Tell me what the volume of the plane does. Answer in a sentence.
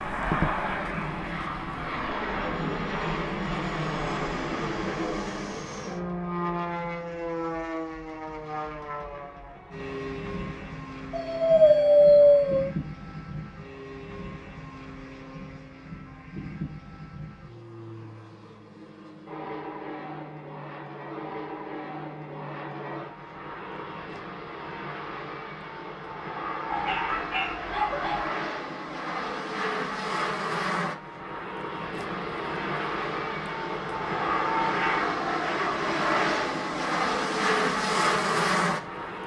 The loudness of the plane goes down, then up.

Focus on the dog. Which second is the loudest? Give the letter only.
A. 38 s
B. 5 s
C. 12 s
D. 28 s
C.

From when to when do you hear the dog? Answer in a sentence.
You can hear the dog from 11.1 to 12.7 s and from 26.7 to 28.3 s.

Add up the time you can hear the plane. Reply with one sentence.
You can hear the plane for 39 seconds altogether.